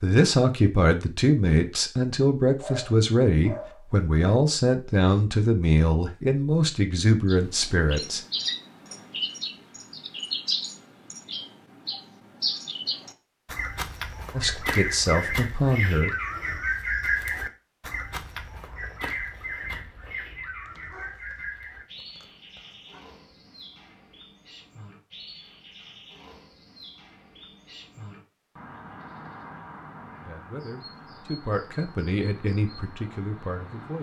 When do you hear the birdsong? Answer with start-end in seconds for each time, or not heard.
7.2-33.9.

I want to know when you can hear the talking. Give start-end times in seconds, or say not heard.
0.0-8.2, 14.3-16.1, 30.2-33.9.